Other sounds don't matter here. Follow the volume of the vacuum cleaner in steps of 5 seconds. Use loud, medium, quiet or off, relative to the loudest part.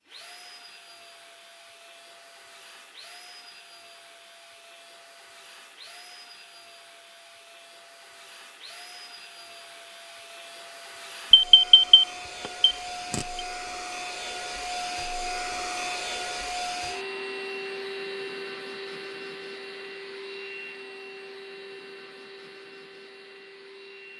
quiet, quiet, loud, loud, medium.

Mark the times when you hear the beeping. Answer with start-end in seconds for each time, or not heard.
11.3-13.4.